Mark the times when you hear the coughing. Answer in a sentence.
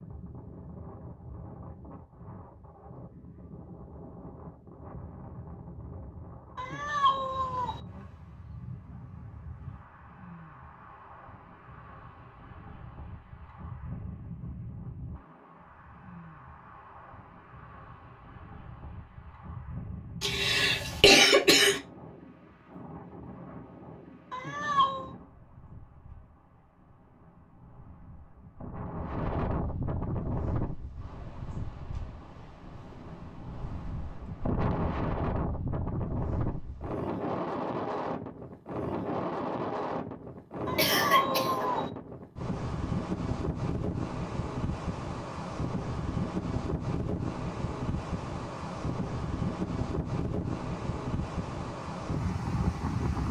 You can hear the coughing from 20.2 to 21.8 s and from 40.8 to 41.7 s.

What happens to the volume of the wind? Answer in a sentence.
The loudness of the wind goes up.